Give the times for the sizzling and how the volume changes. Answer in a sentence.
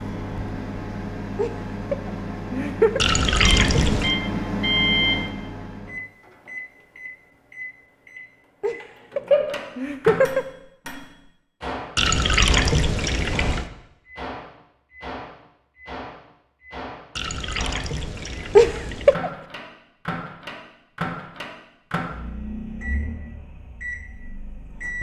The sizzling can't be heard in this clip.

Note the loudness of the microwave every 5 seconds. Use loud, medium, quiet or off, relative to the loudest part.
loud, loud, medium, medium, medium.